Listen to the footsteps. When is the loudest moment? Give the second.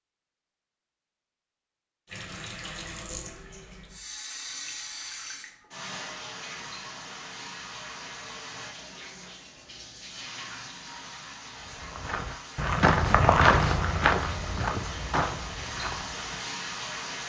13 s.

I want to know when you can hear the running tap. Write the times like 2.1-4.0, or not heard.
2.0-17.2.